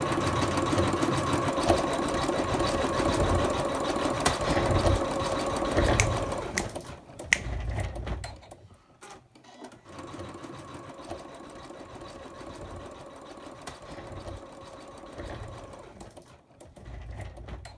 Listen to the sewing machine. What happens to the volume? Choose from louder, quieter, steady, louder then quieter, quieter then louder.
quieter.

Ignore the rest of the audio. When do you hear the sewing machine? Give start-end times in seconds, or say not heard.
0.0-17.7.